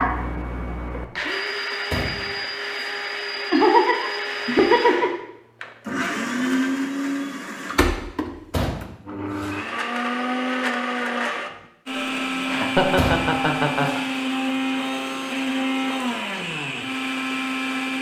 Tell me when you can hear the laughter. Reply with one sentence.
The laughter can be heard from 3.5 to 5.1 s and from 11.9 to 14.0 s.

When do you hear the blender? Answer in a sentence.
You can hear the blender from 0.0 to 17.9 s.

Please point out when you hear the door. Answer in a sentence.
The door can be heard from 1.9 to 3.0 s, from 8.5 to 9.6 s and from 12.9 to 14.0 s.